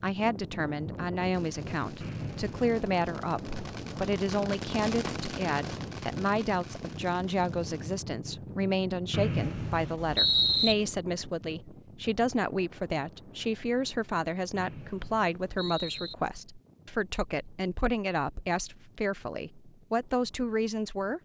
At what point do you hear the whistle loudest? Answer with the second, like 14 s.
10 s.